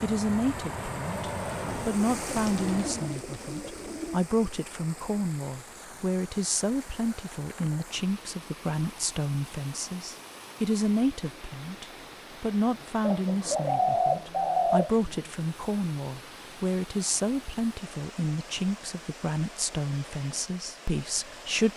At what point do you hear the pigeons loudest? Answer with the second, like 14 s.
14 s.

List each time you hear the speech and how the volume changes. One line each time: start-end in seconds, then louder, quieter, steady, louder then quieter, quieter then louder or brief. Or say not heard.
0.0-21.7 steady.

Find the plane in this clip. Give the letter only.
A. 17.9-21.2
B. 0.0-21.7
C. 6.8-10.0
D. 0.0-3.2
D.